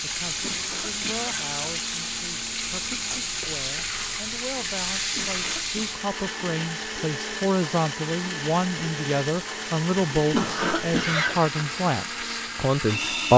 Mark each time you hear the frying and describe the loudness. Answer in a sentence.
The frying can be heard from 0.0 to 13.3 s, getting quieter.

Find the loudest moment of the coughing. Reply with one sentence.
The volume of the coughing peaks at 11 seconds.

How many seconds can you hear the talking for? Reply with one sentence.
You can hear the talking for 13 seconds altogether.